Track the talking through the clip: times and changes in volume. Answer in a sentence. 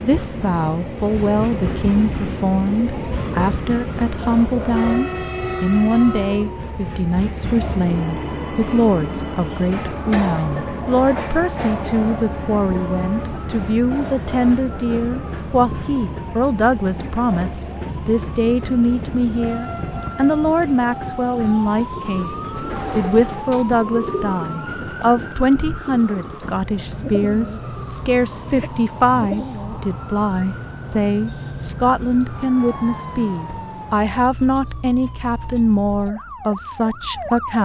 The talking can be heard from 0.0 to 37.6 s, at a steady volume.